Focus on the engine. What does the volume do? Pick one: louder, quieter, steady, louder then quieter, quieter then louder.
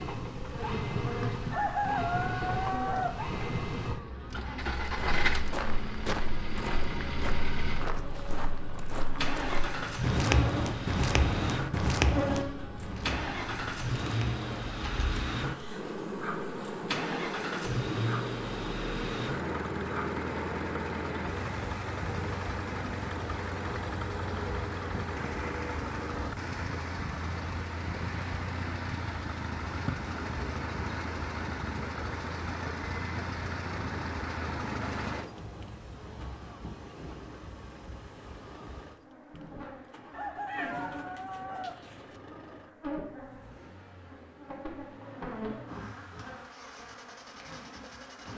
quieter.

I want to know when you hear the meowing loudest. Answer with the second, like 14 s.
41 s.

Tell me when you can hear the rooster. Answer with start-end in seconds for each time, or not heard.
1.5-3.2, 40.1-41.8.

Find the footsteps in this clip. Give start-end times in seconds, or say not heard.
4.8-15.1.